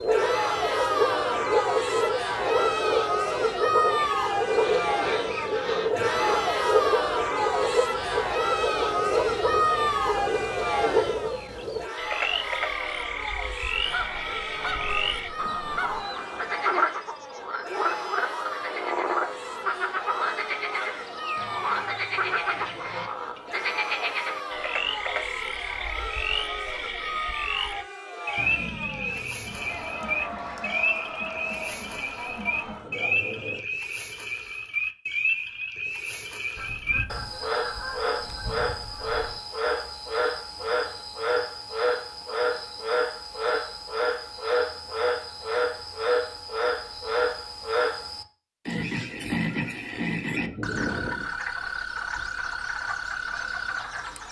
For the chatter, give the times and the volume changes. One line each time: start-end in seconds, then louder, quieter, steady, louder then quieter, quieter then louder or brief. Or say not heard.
0.1-33.6 quieter.